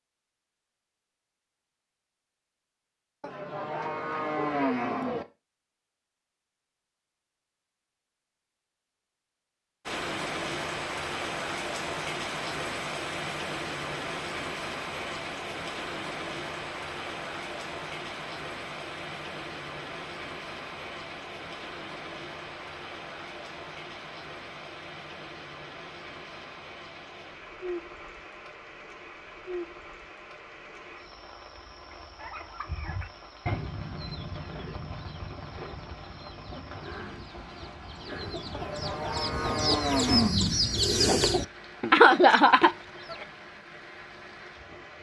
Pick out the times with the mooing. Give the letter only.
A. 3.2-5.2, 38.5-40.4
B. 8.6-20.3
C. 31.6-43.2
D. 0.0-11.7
A.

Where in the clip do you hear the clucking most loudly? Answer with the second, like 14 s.
42 s.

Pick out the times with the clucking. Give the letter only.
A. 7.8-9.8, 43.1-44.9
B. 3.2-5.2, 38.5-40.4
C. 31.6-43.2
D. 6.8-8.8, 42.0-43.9
C.